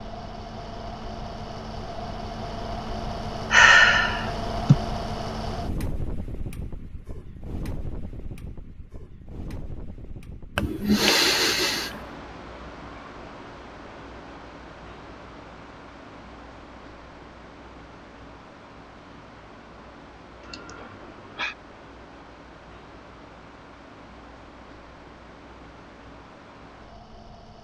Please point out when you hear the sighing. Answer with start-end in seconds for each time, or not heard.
3.5-4.8, 10.6-11.9, 20.4-21.6.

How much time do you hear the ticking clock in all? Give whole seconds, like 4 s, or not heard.
not heard.